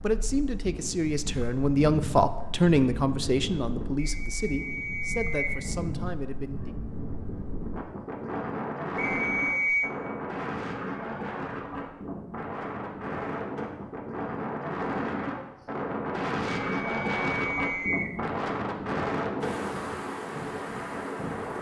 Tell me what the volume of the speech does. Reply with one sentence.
The loudness of the speech goes up, then down.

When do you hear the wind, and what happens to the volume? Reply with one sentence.
The wind can be heard from 0.0 to 21.5 s, getting louder.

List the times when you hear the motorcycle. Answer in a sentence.
The motorcycle can't be heard in this clip.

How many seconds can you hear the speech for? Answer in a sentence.
You can hear the speech for 7 seconds altogether.